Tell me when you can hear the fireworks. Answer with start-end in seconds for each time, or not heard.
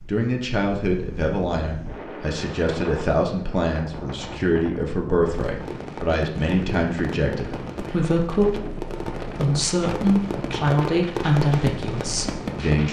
5.3-12.8.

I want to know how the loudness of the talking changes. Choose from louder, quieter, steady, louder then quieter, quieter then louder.
steady.